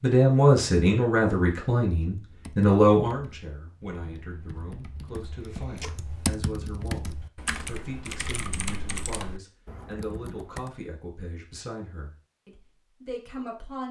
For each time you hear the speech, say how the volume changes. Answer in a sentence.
The speech can be heard from 0.0 to 13.8 s, getting quieter.